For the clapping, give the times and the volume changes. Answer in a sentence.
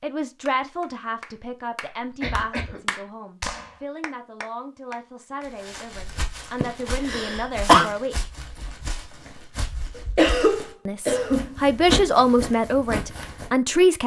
The clapping can be heard from 0.5 to 5.5 s, getting louder then quieter.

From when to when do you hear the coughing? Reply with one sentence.
You can hear the coughing from 2.0 to 3.0 s, from 6.6 to 7.9 s and from 9.9 to 11.6 s.